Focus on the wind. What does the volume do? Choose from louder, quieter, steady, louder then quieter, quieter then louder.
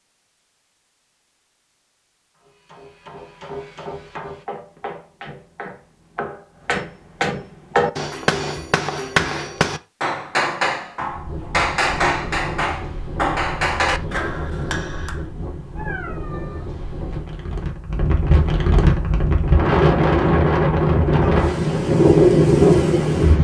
louder.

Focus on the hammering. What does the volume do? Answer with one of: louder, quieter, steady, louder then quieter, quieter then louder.
louder.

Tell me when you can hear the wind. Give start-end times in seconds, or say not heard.
11.1-23.3.